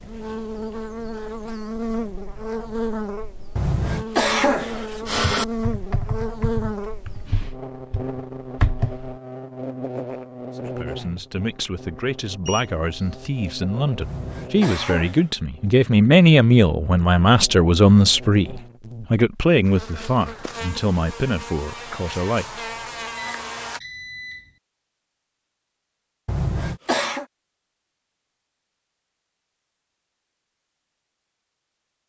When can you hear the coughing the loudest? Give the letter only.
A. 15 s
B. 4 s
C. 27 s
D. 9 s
B.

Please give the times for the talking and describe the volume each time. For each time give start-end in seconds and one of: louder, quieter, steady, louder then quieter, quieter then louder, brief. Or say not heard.
10.6-22.6 louder then quieter.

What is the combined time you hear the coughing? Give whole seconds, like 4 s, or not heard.
4 s.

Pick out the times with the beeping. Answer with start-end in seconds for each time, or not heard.
12.4-13.4, 23.1-24.6.